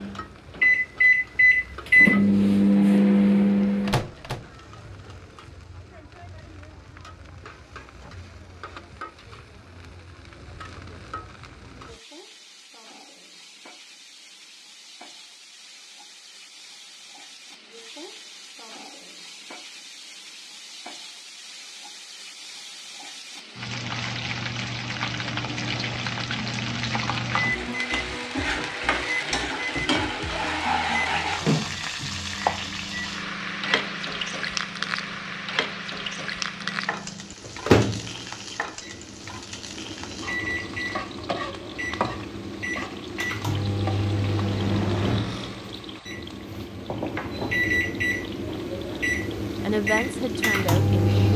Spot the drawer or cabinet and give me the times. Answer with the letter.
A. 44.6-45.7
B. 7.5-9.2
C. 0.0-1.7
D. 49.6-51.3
A.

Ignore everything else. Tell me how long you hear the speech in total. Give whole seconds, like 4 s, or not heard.
2 s.